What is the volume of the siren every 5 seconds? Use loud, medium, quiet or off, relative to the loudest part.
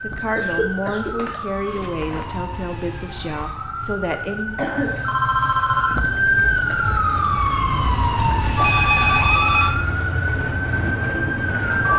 medium, loud, loud.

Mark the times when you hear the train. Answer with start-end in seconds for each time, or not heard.
6.8-11.9.